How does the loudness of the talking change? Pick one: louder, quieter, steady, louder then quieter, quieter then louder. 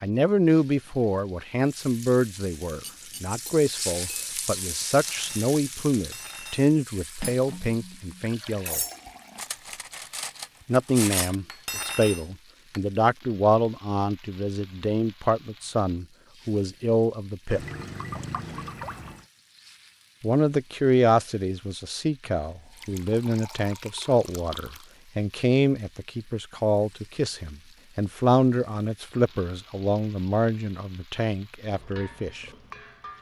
steady.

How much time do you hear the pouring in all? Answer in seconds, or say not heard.
5 s.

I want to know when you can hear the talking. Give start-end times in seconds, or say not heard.
0.0-8.8, 10.7-17.6, 20.2-32.5.